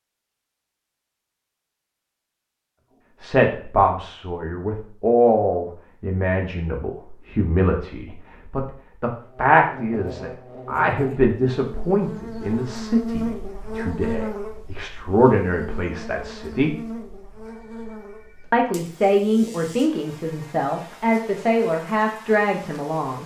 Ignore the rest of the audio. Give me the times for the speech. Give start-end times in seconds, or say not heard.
3.2-16.7, 18.5-23.2.